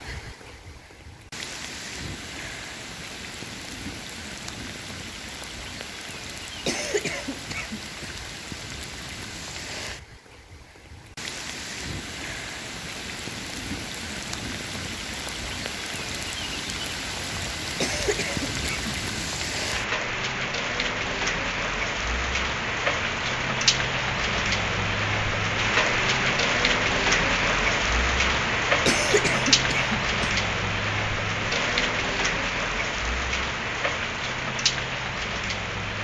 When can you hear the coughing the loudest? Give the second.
29 s.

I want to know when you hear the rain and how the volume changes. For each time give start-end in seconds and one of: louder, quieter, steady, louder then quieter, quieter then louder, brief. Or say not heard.
0.0-35.9 louder.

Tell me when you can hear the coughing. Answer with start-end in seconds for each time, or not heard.
6.7-8.2, 17.8-19.2, 28.9-30.4.